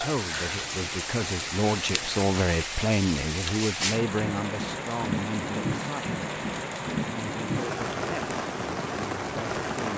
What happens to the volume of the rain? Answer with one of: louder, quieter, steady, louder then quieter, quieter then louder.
steady.